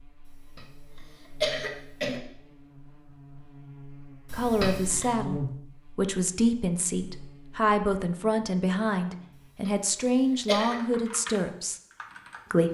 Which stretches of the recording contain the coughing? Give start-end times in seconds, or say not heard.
0.6-2.2, 4.2-5.2, 9.7-10.8.